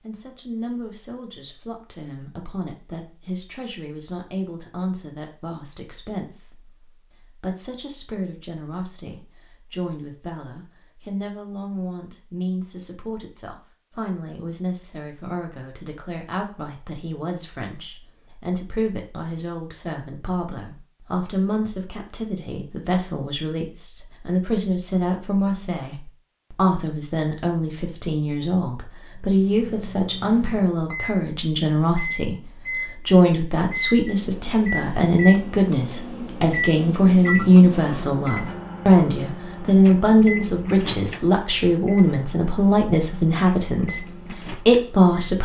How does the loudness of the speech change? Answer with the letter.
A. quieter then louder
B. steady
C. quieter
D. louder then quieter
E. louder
E.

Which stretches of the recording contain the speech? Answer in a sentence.
You can hear the speech from 0.0 to 45.4 s.